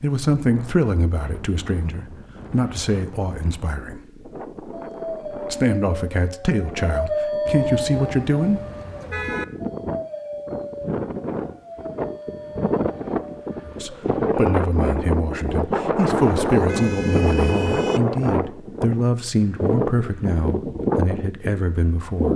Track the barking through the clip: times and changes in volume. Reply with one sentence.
You can hear the barking from 4.7 to 14.8 s, getting louder then quieter.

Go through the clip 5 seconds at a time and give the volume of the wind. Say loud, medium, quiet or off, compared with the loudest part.
quiet, medium, loud, loud, loud.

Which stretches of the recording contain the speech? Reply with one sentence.
The speech can be heard from 0.0 to 4.0 s, from 5.5 to 8.6 s and from 13.7 to 22.3 s.